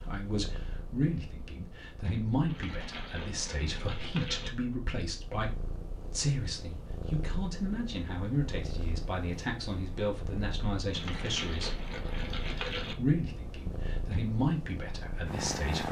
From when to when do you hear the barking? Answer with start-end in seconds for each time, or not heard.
not heard.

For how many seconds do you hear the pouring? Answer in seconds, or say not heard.
4 s.